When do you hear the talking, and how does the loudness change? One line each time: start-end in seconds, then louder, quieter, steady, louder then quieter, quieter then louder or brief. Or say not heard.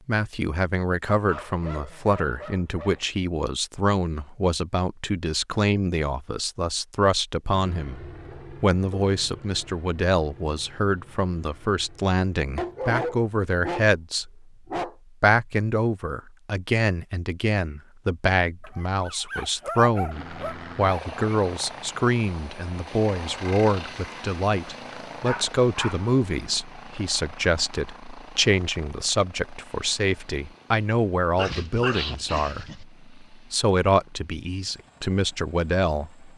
0.1-14.4 steady
15.2-36.3 steady.